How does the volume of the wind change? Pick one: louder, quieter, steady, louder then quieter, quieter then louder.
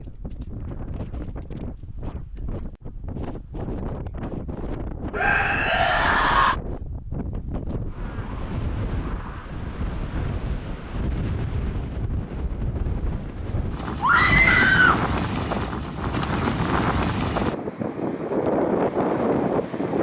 louder.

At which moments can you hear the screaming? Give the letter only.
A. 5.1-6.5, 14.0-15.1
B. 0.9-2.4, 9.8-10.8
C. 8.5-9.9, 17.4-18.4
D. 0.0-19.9
A.